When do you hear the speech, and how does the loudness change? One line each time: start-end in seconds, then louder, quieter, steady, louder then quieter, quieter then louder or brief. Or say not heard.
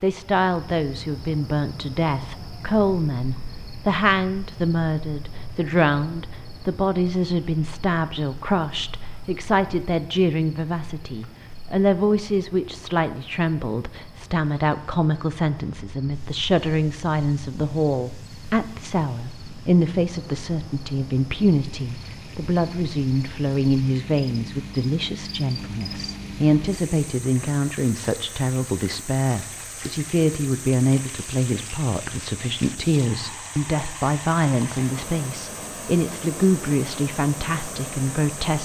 0.0-38.6 steady.